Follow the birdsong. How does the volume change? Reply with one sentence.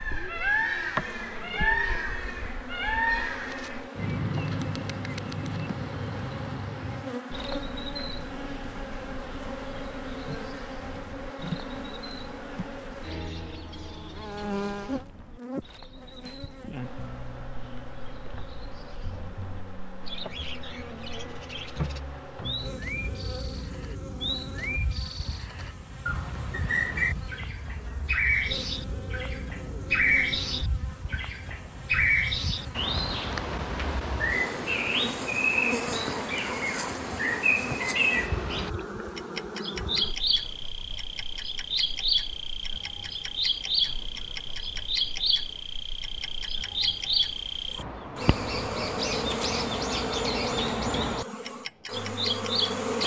The volume of the birdsong goes down, then up.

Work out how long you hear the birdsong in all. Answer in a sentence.
You can hear the birdsong for 53 seconds altogether.